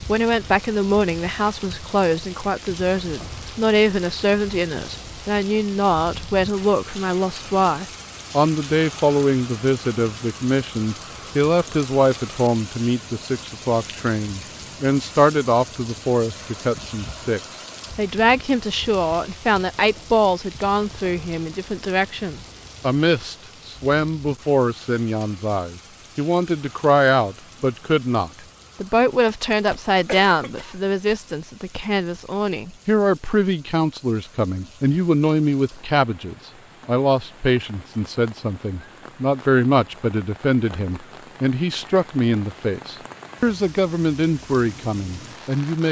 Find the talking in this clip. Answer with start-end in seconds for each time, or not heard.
0.0-45.8.